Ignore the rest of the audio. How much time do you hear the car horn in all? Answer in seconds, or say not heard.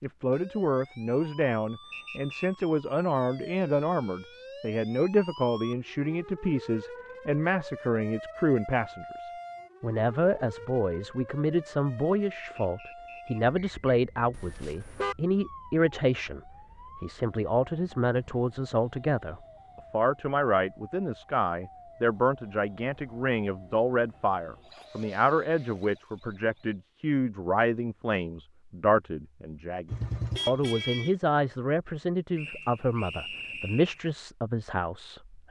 2 s.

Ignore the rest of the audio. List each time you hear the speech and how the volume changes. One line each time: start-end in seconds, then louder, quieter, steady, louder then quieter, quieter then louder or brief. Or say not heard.
0.0-35.4 steady.